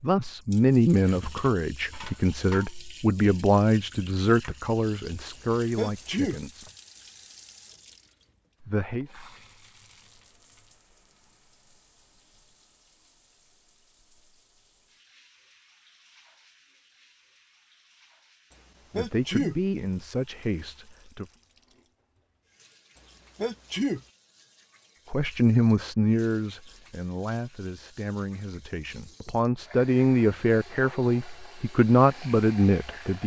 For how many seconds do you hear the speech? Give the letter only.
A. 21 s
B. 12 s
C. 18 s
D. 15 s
C.